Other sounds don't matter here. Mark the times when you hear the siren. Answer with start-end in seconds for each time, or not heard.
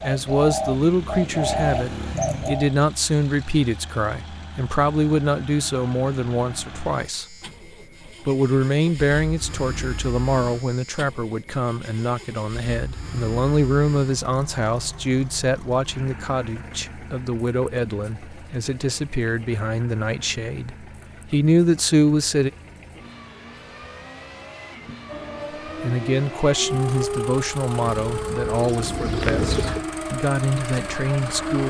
25.1-31.6.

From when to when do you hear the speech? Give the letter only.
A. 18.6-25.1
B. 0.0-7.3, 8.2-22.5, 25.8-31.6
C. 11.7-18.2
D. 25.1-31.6
B.